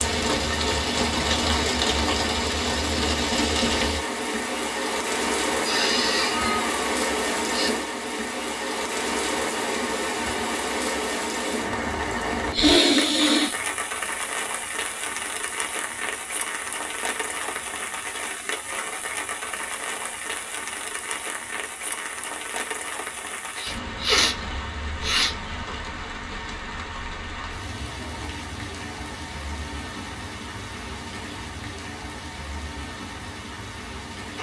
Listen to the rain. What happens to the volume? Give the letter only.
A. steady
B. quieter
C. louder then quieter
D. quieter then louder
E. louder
B.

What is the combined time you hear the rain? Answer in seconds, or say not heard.
34 s.